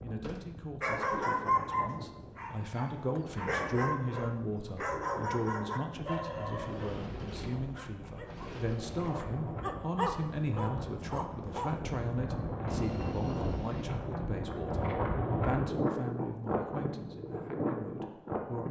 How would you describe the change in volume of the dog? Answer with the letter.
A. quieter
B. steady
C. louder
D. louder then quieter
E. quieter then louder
E.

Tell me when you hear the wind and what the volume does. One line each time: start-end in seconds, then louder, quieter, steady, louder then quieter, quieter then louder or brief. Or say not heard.
0.0-18.6 louder.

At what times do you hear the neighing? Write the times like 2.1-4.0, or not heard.
not heard.